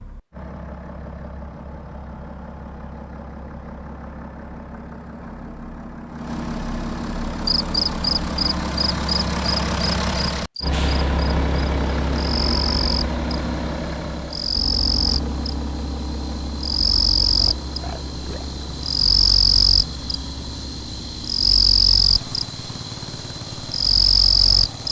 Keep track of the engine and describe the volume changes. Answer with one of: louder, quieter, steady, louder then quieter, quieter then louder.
louder then quieter.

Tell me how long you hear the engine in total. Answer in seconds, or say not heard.
25 s.